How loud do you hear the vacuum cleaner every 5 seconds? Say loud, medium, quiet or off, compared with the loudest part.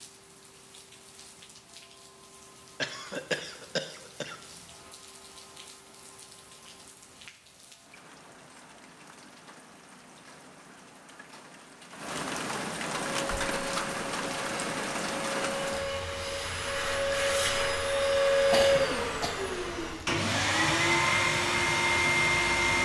off, off, quiet, loud, loud.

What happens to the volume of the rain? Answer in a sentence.
The loudness of the rain goes up, then down.